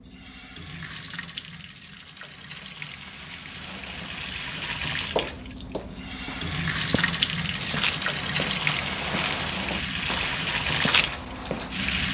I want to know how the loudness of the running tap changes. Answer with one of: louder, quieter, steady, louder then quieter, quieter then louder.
louder.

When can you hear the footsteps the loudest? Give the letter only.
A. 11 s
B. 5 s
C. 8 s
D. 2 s
A.